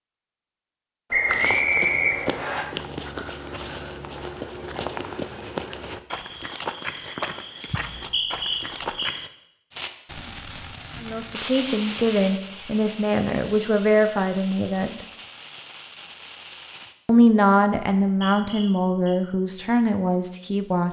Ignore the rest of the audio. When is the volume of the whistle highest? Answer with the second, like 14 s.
2 s.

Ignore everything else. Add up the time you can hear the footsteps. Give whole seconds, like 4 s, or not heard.
8 s.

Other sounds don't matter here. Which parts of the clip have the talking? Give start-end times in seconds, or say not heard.
11.0-15.1, 17.1-20.8.